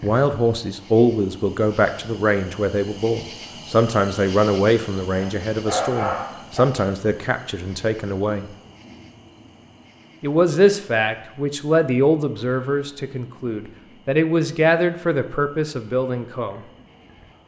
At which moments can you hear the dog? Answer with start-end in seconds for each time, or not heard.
5.2-6.7.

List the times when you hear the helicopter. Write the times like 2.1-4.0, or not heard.
not heard.